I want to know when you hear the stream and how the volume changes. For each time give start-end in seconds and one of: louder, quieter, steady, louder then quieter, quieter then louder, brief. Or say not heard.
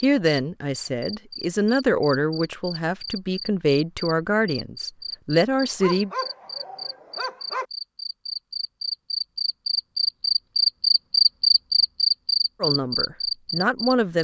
not heard.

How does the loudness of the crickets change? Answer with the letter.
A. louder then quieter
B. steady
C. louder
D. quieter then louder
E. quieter
C.